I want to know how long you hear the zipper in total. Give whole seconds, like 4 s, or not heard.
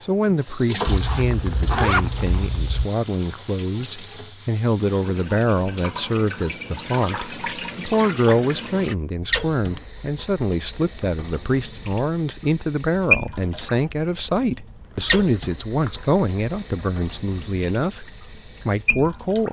3 s.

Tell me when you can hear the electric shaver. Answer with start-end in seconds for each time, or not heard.
not heard.